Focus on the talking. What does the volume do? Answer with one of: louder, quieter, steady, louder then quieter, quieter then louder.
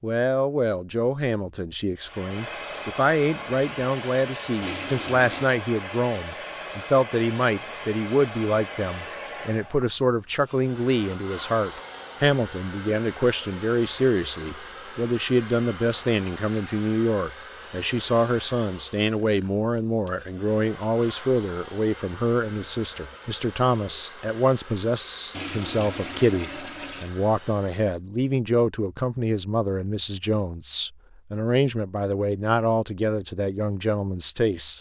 steady.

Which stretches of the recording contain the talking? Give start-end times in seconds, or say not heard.
0.0-34.7.